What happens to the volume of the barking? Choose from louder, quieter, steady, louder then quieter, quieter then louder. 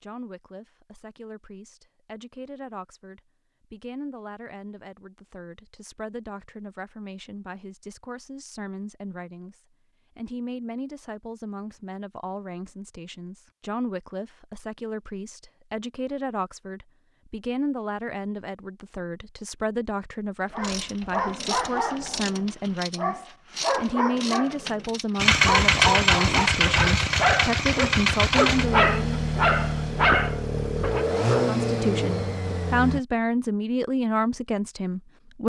louder.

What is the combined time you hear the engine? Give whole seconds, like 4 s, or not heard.
8 s.